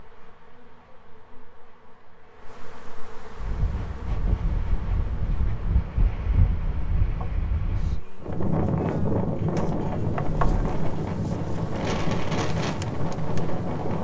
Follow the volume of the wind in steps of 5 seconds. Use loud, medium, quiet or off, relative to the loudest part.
medium, loud, loud.